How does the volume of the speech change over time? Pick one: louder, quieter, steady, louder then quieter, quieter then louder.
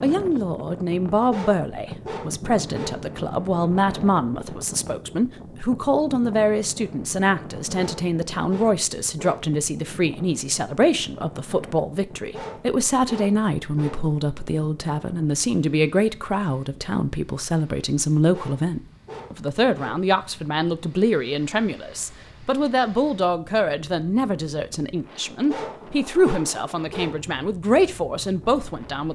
steady.